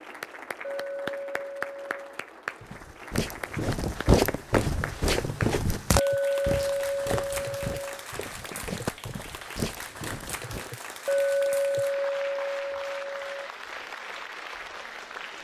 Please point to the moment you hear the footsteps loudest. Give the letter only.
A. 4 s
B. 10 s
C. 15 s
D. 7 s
A.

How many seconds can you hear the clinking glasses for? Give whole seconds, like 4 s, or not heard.
6 s.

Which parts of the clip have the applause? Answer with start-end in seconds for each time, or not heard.
0.0-15.3.